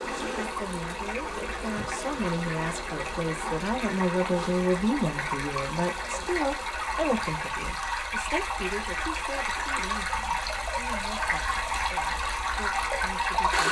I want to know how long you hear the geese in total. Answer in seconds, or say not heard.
not heard.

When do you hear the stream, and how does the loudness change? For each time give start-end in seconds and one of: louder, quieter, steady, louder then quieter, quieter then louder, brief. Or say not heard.
0.0-13.6 louder.